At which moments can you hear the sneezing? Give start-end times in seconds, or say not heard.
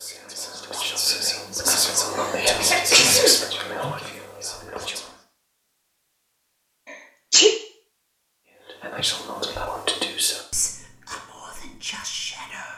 1.6-3.4, 6.9-7.5.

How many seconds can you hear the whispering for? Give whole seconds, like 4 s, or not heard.
9 s.